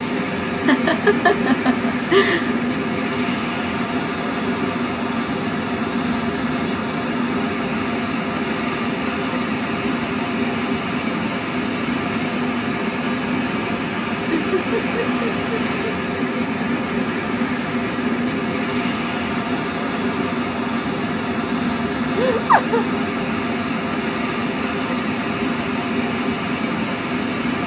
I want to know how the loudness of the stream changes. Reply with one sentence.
The volume of the stream stays about the same.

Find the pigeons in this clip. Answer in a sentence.
You can't hear the pigeons here.